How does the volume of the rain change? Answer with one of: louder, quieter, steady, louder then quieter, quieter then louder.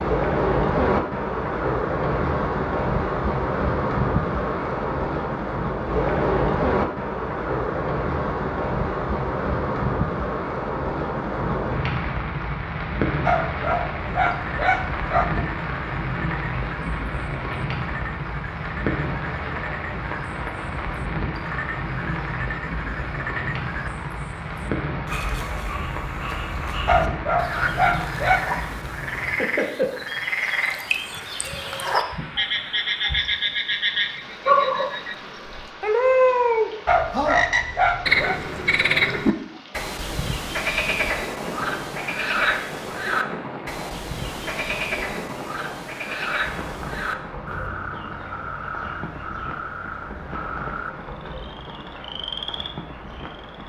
quieter.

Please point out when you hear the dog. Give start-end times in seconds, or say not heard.
13.2-15.2, 26.9-28.4, 36.9-38.4.